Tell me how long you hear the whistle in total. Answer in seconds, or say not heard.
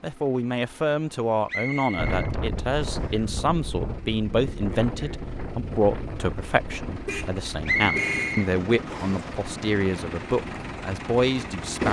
3 s.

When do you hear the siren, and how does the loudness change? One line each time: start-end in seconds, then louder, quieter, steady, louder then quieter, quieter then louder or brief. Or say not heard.
not heard.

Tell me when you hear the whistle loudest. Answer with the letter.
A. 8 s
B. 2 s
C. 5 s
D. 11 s
A.